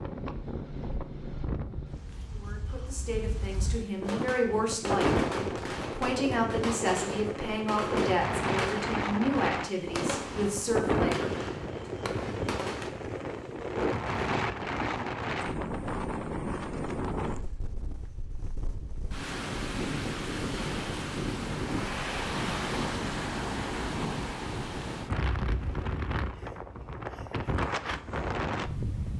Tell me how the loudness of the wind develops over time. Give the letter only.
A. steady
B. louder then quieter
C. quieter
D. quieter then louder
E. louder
A.